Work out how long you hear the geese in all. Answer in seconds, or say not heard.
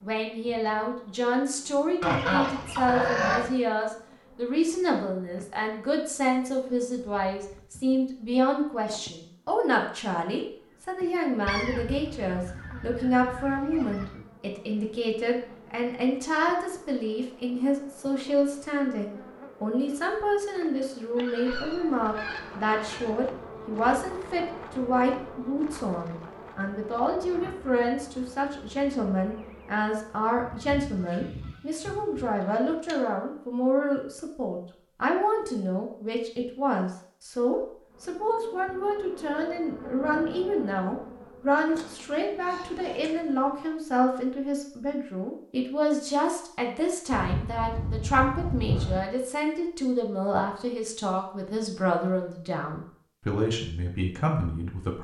13 s.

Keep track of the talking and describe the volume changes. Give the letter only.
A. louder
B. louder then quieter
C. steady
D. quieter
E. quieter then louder
C.